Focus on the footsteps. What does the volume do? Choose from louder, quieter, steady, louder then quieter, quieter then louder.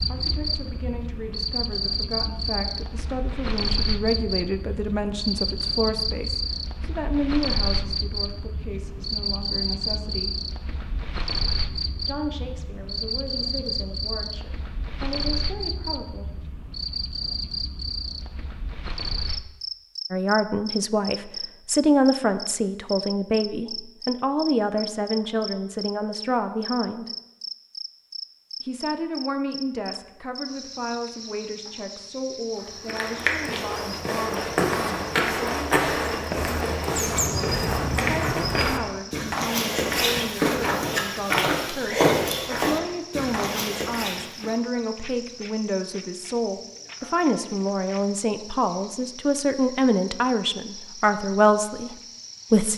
steady.